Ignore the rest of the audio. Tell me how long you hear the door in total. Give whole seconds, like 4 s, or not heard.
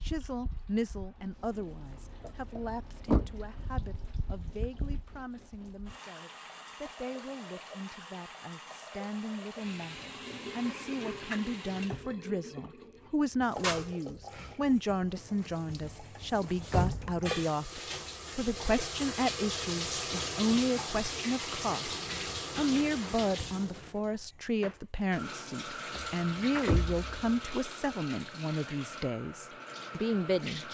3 s.